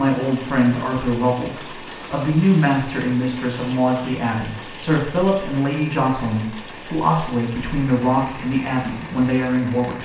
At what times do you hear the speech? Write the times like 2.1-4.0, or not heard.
0.0-10.0.